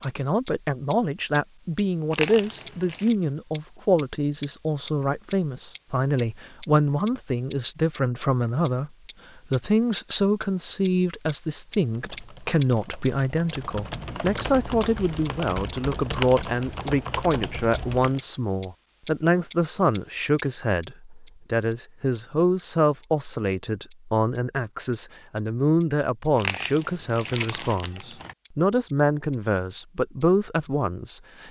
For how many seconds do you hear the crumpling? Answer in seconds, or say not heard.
3 s.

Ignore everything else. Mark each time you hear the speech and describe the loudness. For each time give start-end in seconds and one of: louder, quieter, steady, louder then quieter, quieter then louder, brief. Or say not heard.
0.0-8.9 steady
9.5-31.4 steady.